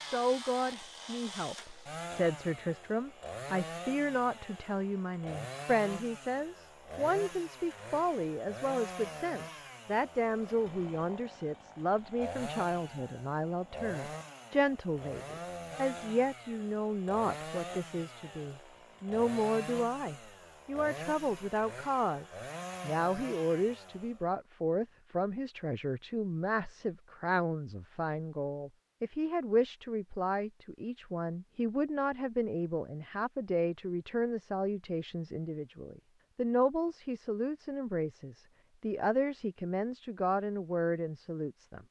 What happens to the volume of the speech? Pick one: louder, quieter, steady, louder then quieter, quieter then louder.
steady.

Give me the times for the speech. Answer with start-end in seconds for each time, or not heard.
0.1-41.8.